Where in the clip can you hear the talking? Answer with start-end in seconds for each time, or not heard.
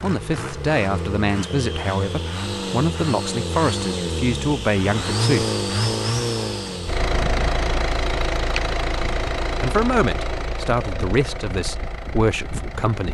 0.0-5.5, 9.6-13.1.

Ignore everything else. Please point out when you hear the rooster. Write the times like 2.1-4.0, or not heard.
not heard.